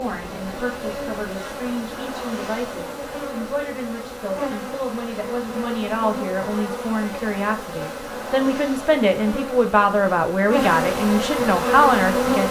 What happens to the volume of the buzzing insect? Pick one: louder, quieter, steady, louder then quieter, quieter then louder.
louder.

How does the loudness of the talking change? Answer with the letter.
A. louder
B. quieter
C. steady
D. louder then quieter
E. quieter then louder
A.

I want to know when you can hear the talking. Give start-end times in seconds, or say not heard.
0.0-12.4.